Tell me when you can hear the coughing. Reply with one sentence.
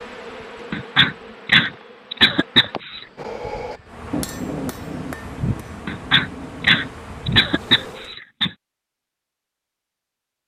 The coughing can be heard from 0.7 to 3.0 s and from 5.8 to 8.5 s.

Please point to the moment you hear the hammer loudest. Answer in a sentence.
The volume of the hammer peaks at 4 seconds.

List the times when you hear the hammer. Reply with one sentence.
You can hear the hammer from 3.1 to 7.0 s.